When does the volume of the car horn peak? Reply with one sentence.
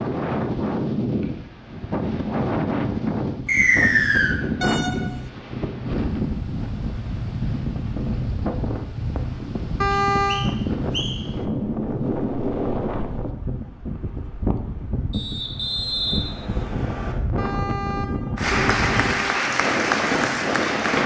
The loudest moment of the car horn is at 10 seconds.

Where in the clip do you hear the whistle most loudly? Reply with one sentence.
The loudest moment of the whistle is at 4 seconds.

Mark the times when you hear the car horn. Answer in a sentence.
The car horn can be heard from 4.6 to 5.3 s, from 9.8 to 10.4 s and from 17.4 to 19.4 s.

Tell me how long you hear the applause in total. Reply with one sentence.
The applause can be heard for 3 seconds in total.